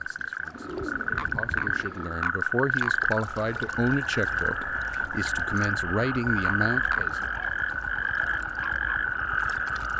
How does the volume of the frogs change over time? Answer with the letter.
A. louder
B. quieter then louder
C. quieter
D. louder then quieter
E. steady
E.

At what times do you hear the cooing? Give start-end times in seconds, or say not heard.
0.5-2.1.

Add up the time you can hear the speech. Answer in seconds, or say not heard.
7 s.